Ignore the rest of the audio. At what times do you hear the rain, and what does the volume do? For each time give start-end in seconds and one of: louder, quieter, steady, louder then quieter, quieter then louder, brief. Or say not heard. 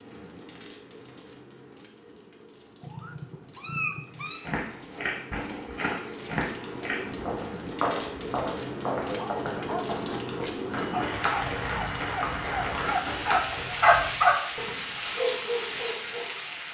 0.0-16.6 louder.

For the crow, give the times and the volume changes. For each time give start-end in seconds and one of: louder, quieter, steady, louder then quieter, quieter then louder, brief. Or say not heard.
not heard.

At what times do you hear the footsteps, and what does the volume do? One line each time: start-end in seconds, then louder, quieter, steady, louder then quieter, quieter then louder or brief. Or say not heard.
4.3-13.8 steady.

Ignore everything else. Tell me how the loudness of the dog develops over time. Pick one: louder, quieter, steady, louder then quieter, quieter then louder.
louder then quieter.